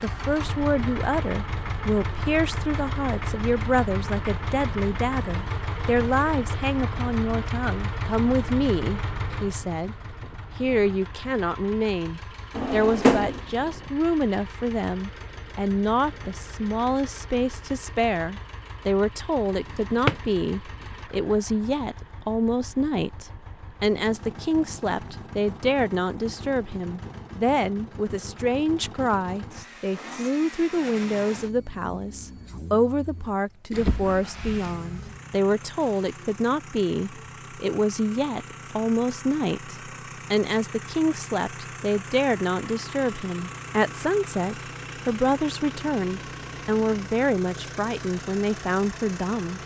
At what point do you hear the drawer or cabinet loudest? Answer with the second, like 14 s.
13 s.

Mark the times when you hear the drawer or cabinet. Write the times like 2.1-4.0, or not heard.
12.6-13.4, 33.7-34.2.